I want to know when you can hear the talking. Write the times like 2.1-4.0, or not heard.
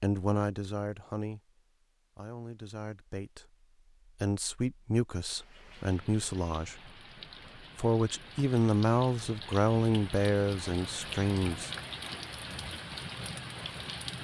0.0-3.5, 4.2-6.9, 7.8-11.7.